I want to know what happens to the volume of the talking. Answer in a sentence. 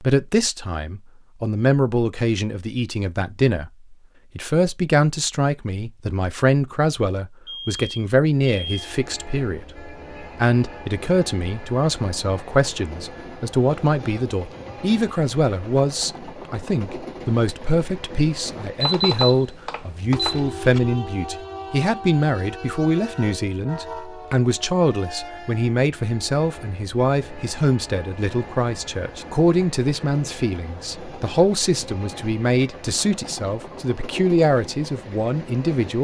The loudness of the talking stays about the same.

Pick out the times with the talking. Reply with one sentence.
You can hear the talking from 0.0 to 35.9 s.